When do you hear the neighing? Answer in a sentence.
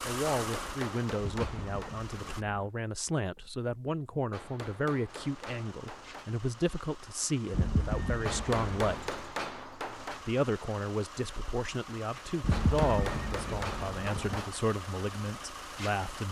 The neighing can be heard from 1.2 to 2.7 s, from 7.5 to 9.1 s and from 12.4 to 14.4 s.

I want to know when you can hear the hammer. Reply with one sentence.
The hammer can be heard from 0.3 to 1.9 s, from 4.3 to 6.3 s, from 8.2 to 10.2 s and from 12.5 to 14.6 s.